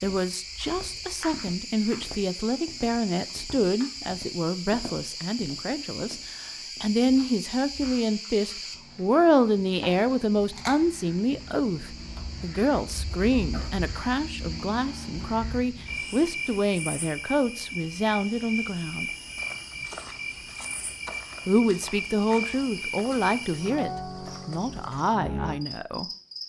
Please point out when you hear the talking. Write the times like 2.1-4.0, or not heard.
0.0-19.1, 21.4-26.1.